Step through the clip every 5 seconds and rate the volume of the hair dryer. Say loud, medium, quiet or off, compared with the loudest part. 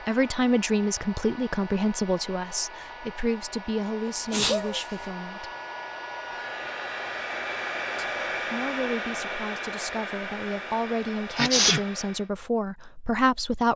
medium, loud, medium.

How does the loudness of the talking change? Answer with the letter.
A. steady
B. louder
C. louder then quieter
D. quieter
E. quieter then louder
E.